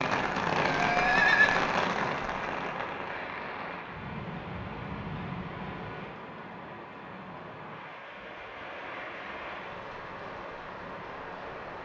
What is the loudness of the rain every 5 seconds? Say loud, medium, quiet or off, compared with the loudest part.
loud, medium, medium.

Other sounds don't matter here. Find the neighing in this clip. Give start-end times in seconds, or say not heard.
0.7-1.7.